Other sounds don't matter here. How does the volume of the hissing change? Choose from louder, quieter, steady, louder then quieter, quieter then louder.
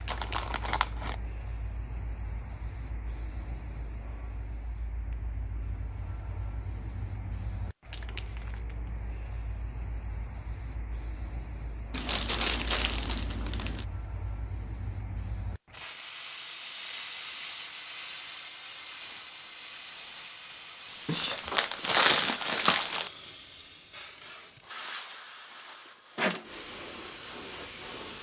louder.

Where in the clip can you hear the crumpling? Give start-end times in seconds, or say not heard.
0.1-1.1, 11.9-13.8, 21.1-23.1.